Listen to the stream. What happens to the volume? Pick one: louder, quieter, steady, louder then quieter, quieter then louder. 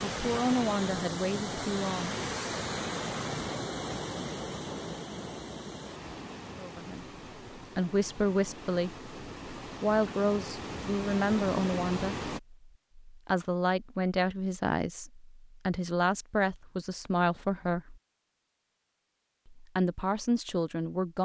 quieter then louder.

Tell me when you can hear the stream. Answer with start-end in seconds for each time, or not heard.
0.0-12.4.